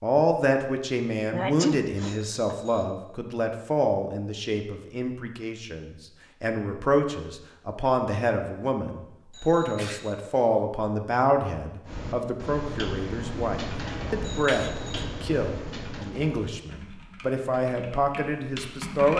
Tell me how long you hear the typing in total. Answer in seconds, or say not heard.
7 s.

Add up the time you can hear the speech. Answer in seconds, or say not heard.
19 s.